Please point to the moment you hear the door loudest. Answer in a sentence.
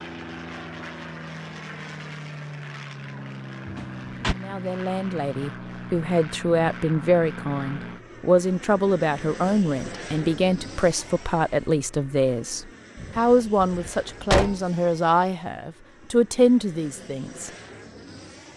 The volume of the door peaks at 14 seconds.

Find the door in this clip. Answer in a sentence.
You can hear the door from 3.6 to 4.3 s and from 12.9 to 14.6 s.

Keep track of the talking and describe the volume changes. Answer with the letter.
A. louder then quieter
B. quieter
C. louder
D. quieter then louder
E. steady
E.